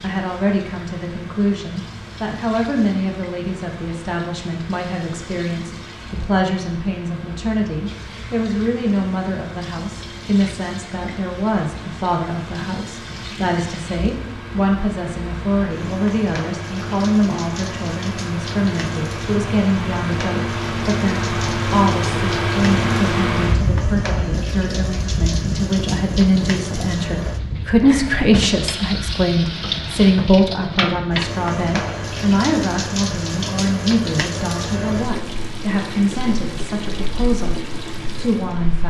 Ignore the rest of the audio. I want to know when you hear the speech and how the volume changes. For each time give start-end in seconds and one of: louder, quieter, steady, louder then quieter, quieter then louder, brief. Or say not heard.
0.0-37.5 steady
38.1-38.8 brief.